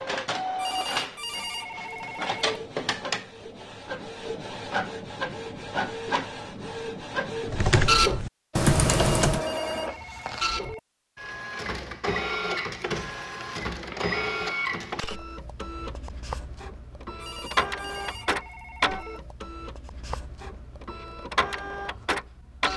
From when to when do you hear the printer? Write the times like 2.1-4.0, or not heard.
0.0-22.7.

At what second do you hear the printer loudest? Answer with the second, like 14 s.
8 s.